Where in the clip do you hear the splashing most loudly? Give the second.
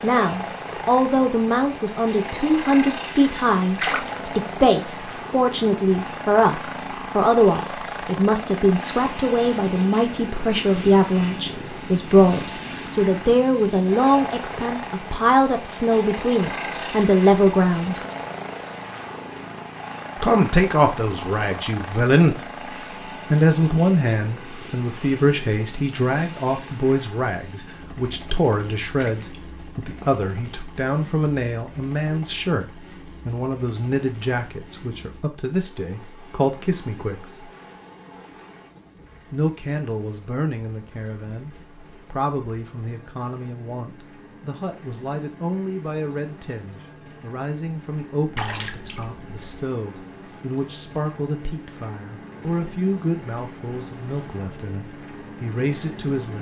4 s.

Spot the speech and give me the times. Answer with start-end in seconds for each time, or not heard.
0.0-18.0, 20.2-22.4, 23.3-37.5, 39.3-56.3.